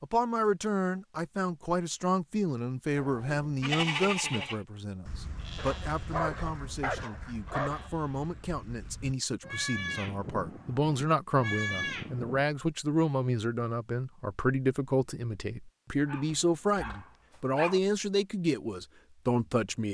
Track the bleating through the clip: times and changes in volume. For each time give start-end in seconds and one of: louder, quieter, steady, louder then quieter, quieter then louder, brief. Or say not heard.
2.9-12.4 quieter then louder.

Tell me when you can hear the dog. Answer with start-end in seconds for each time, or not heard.
5.5-7.9, 16.1-17.8.